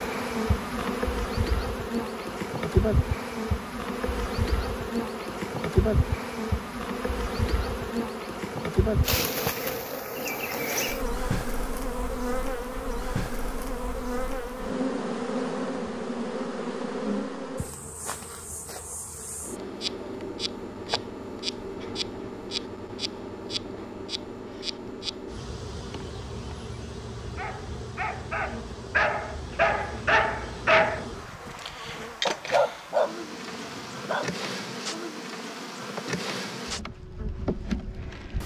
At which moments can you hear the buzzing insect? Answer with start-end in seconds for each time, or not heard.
0.0-38.4.